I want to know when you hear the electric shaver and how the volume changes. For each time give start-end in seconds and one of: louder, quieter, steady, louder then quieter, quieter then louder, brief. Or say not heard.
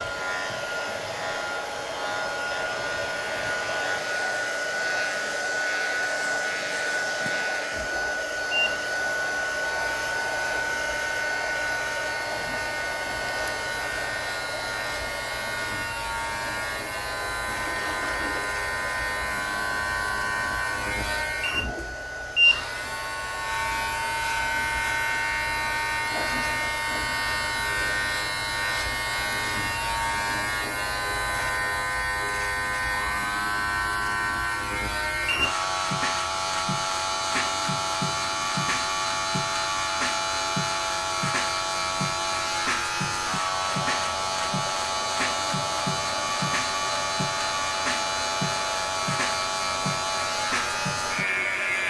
0.0-51.8 louder.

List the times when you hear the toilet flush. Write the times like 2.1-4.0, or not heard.
17.4-18.5.